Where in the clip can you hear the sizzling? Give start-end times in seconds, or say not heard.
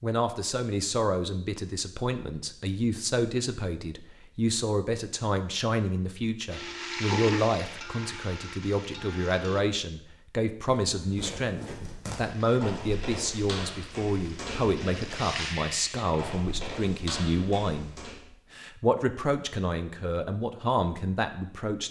6.5-9.7, 12.1-16.4.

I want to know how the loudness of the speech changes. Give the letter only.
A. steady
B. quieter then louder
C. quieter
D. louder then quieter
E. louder
A.